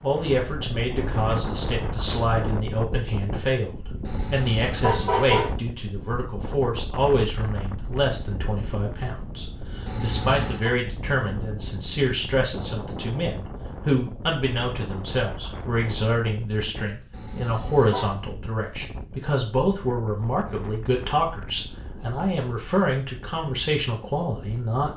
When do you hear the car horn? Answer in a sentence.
The car horn can be heard from 4.0 to 5.5 s, from 9.8 to 10.8 s and from 17.1 to 18.1 s.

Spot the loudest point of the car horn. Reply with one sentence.
The loudest moment of the car horn is at 5 seconds.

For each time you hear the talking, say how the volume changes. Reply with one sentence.
You can hear the talking from 0.0 to 24.9 s, at a steady volume.